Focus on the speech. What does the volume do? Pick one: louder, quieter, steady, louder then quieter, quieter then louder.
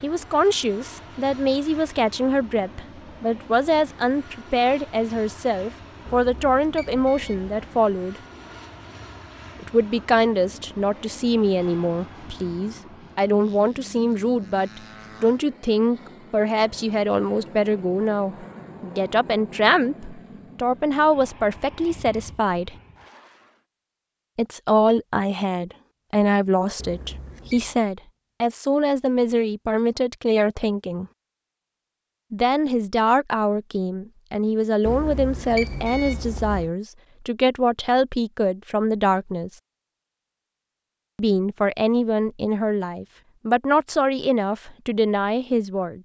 steady.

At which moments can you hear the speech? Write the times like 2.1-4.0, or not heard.
0.0-8.2, 9.6-22.8, 24.4-31.1, 32.3-39.5, 41.1-46.0.